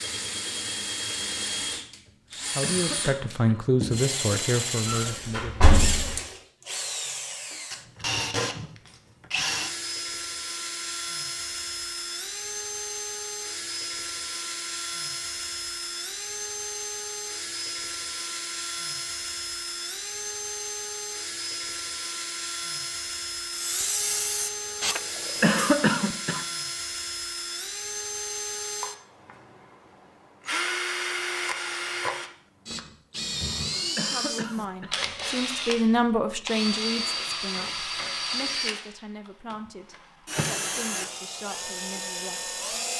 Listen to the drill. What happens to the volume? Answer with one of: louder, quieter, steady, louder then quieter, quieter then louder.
steady.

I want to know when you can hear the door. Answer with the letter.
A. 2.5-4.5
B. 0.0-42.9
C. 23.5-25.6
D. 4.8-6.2
D.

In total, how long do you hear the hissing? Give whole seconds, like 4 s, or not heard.
2 s.